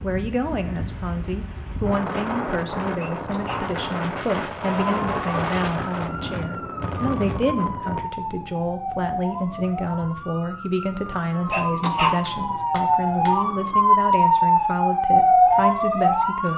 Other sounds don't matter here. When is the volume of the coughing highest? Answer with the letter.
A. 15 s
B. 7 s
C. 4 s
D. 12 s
D.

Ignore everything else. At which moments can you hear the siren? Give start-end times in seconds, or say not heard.
4.6-16.5.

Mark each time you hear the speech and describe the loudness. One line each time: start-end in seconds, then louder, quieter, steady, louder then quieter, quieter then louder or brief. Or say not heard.
0.0-16.5 steady.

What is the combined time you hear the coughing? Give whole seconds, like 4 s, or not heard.
2 s.